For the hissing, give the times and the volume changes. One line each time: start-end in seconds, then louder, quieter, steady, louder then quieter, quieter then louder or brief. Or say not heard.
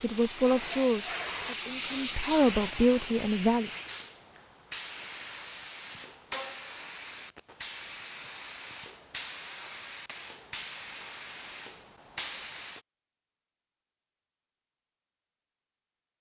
0.0-12.8 steady.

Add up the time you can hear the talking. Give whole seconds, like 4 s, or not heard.
4 s.